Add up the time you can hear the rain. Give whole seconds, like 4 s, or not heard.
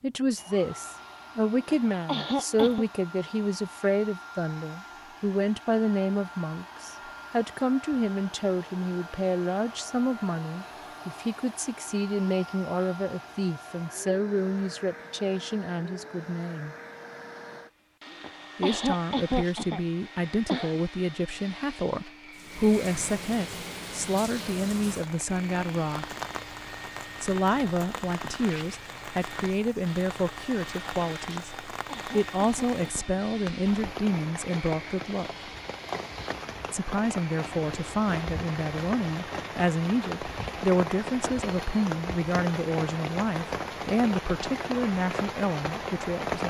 24 s.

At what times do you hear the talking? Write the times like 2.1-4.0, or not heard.
0.0-16.8, 18.6-26.1, 27.2-35.3, 36.7-46.4.